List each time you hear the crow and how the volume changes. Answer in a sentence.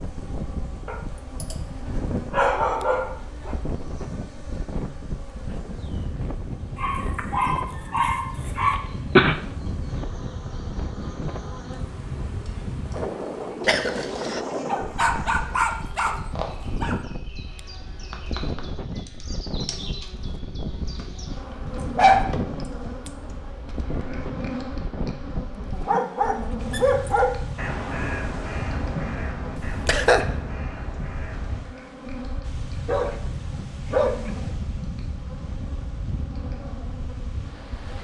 You can hear the crow from 26.6 to 31.6 s, getting quieter.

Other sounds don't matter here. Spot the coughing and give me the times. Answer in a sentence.
The coughing can be heard from 8.7 to 9.4 s, from 13.7 to 14.4 s and from 29.6 to 30.2 s.